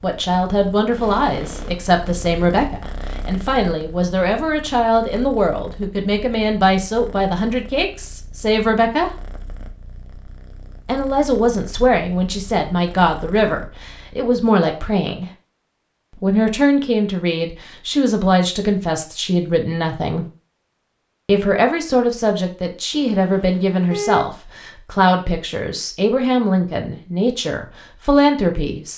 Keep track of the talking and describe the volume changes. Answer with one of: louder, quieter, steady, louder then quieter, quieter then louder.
steady.